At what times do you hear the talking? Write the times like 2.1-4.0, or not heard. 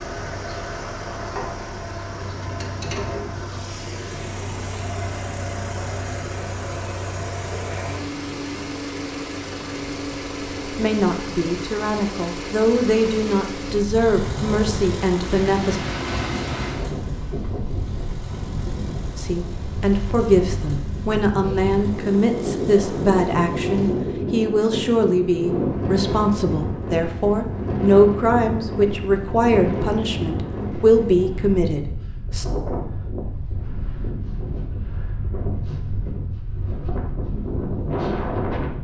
10.8-15.8, 19.1-32.5.